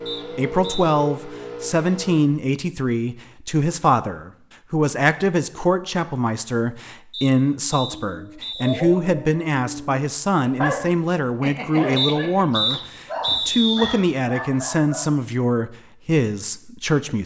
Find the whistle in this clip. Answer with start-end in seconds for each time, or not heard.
0.1-0.9, 7.1-8.8, 11.9-13.9.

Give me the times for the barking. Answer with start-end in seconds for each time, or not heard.
8.1-15.1.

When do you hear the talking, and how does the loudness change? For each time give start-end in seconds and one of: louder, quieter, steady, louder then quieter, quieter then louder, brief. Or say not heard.
0.3-17.2 steady.